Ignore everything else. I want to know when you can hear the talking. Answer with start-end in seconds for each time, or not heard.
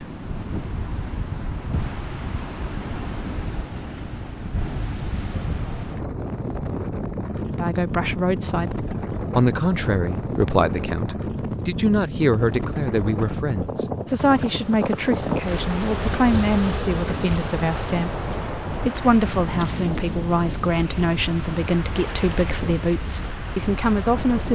7.5-24.5.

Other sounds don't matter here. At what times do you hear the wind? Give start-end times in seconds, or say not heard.
0.0-24.5.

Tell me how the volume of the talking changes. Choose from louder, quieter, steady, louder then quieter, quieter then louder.
steady.